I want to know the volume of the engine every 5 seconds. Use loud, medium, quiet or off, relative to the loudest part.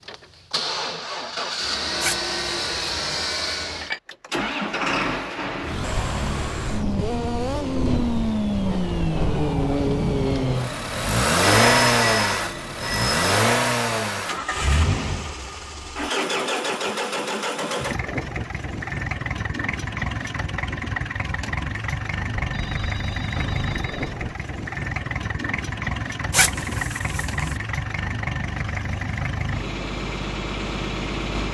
medium, loud, loud, medium, medium, medium, medium.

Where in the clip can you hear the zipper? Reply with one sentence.
The zipper can be heard from 2.0 to 3.2 s and from 26.3 to 27.6 s.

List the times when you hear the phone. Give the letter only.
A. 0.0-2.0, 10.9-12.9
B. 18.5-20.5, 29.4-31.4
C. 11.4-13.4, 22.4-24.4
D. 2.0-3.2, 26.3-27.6
C.